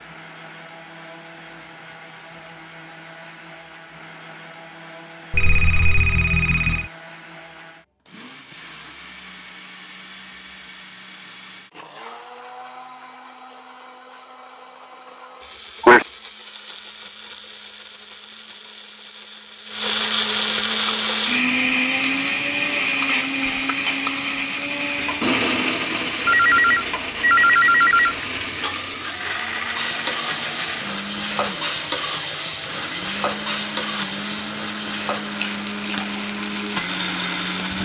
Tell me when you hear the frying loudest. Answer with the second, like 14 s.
32 s.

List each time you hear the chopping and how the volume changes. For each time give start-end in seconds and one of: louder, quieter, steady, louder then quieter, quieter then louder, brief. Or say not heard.
not heard.